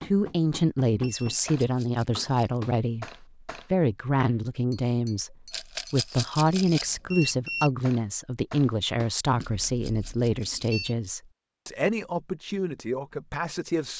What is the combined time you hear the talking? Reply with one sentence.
You can hear the talking for 14 seconds altogether.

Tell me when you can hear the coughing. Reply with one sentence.
You can't hear the coughing here.